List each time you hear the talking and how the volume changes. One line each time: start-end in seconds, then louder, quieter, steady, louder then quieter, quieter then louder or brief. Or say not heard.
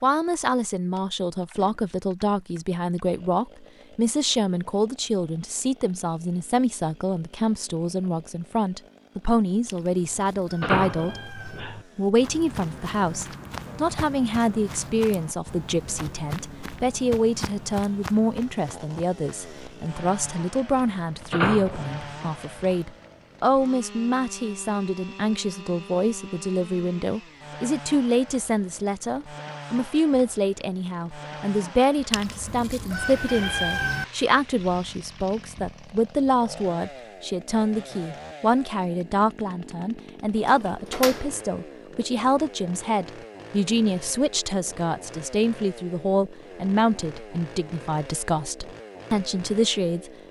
0.0-50.1 steady.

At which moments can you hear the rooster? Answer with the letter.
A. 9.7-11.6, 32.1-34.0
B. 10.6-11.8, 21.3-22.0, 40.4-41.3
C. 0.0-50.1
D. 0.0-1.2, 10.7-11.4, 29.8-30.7
A.